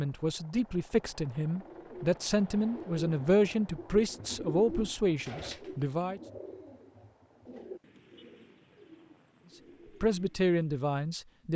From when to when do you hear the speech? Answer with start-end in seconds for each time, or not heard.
0.0-6.2, 10.0-11.5.